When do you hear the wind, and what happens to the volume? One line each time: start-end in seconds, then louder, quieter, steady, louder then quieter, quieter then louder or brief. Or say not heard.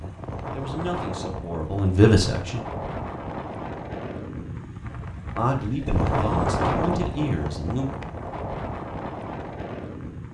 0.0-10.2 louder then quieter.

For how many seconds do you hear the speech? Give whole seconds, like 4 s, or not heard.
5 s.